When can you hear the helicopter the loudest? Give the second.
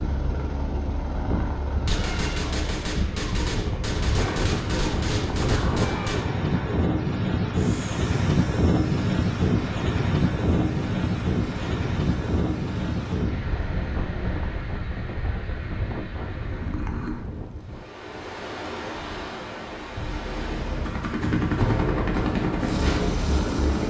22 s.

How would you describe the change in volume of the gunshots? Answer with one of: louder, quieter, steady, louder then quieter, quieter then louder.
steady.